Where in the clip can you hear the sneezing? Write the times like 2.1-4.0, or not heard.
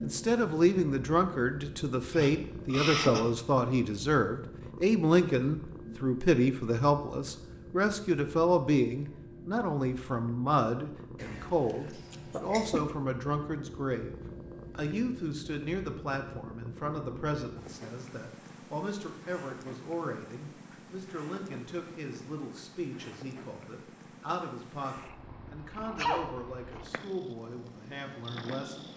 2.1-3.2, 11.2-12.8, 25.9-26.4.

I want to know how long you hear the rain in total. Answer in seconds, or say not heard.
not heard.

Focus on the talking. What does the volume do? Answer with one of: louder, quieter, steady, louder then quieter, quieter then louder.
quieter.